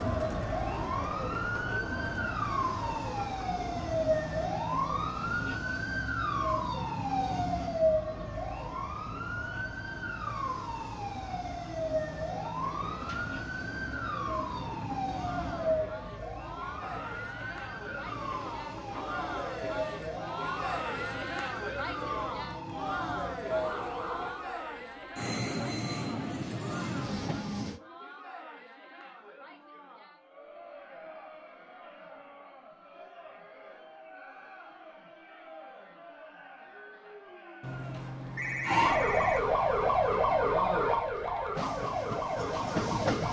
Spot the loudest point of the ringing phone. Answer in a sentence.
The volume of the ringing phone peaks at 39 seconds.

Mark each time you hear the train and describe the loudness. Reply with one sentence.
You can hear the train from 12.6 to 27.8 s, getting louder; and briefly from 41.5 to 43.2 s.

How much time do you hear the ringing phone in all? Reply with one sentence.
The ringing phone can be heard for 3 seconds in total.